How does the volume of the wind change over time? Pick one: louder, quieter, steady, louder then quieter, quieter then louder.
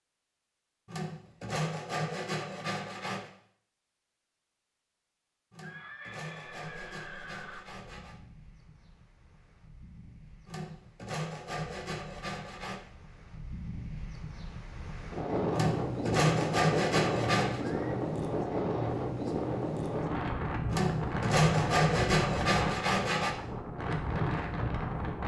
louder.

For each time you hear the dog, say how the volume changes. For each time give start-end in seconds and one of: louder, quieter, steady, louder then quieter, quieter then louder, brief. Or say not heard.
not heard.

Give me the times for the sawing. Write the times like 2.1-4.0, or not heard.
0.8-3.3, 5.5-8.2, 10.4-12.8, 15.5-17.6, 20.6-23.4.